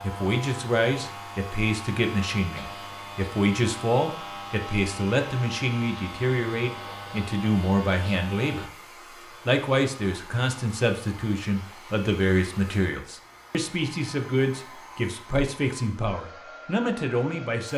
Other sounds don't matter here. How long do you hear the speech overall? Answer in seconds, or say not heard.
17 s.